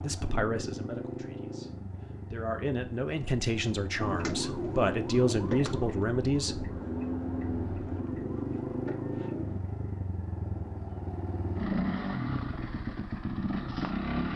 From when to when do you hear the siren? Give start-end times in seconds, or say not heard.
4.0-9.6.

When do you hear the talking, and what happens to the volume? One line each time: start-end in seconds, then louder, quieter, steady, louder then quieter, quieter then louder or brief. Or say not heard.
0.0-6.5 louder.